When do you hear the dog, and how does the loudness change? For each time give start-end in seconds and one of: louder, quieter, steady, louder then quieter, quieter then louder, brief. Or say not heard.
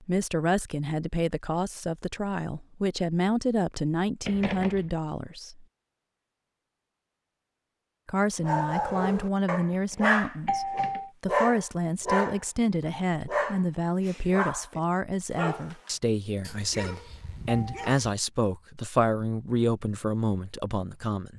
8.4-18.1 quieter.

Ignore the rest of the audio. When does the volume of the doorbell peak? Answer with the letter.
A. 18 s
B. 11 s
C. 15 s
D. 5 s
B.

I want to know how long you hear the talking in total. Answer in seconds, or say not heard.
19 s.